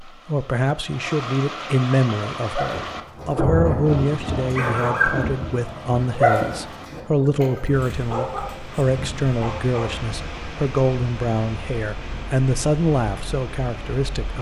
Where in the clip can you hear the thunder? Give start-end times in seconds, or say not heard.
2.7-7.2.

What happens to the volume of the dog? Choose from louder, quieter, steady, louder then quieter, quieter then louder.
louder then quieter.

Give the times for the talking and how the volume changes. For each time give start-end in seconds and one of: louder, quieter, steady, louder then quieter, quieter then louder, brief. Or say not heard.
0.0-14.3 steady.